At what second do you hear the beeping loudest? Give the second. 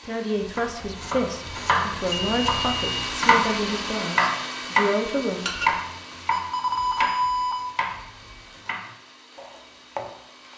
7 s.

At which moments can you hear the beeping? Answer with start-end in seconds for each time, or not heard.
2.1-3.2, 6.3-7.8.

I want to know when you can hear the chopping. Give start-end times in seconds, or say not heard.
0.6-10.5.